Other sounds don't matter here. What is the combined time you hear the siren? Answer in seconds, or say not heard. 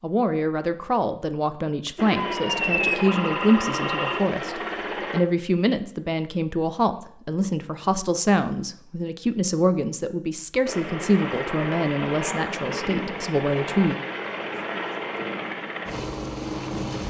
2 s.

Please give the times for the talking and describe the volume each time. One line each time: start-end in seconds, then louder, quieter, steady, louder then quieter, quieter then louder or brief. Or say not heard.
0.0-13.9 steady.